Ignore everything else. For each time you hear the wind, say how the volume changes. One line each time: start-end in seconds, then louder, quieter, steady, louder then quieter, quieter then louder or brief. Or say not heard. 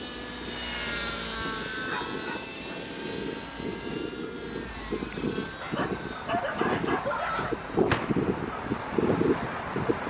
0.0-10.0 louder.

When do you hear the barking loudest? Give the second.
7 s.